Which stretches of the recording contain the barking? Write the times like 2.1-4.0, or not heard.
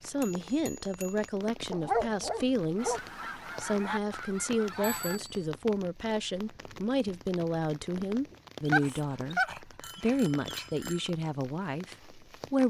1.7-3.0, 8.7-10.7.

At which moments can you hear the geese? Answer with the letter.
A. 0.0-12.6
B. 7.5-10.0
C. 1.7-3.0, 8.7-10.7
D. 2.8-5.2
D.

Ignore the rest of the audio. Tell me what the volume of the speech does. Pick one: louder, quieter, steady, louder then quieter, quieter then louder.
steady.